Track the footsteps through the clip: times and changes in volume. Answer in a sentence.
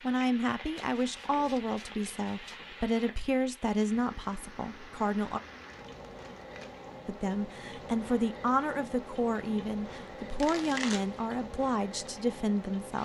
The footsteps can't be heard in this clip.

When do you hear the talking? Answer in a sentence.
The talking can be heard from 0.0 to 5.4 s and from 7.0 to 13.0 s.